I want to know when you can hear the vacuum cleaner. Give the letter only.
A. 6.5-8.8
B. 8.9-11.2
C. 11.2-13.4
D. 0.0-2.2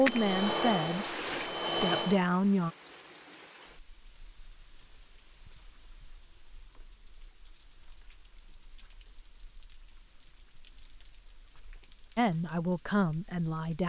D.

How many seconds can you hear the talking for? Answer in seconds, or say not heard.
4 s.